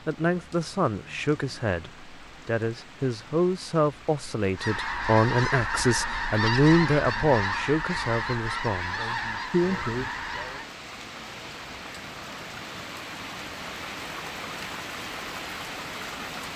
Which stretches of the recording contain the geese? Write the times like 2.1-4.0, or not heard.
4.5-10.7.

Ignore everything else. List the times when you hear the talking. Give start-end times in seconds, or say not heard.
0.1-10.2.